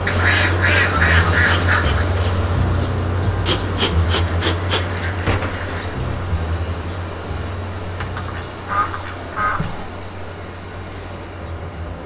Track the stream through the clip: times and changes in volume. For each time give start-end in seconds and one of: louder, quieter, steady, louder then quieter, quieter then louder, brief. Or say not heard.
0.0-12.0 quieter.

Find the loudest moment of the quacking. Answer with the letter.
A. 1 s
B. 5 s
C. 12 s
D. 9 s
A.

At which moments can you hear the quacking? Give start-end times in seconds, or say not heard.
0.1-2.0, 4.2-6.0, 8.2-9.9.